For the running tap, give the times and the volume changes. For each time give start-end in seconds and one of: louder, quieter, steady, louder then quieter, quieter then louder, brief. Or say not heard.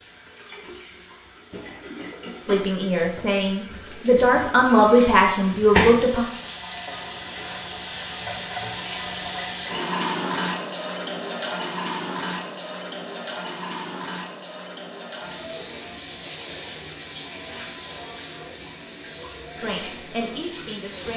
0.0-21.1 louder then quieter.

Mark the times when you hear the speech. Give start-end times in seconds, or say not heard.
2.4-6.2, 19.6-21.1.